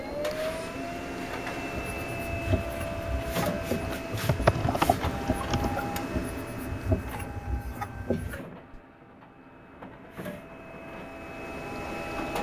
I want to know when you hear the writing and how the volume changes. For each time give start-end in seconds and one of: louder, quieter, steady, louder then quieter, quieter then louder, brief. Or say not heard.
1.7-8.8 steady.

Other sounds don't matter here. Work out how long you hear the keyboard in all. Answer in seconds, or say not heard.
2 s.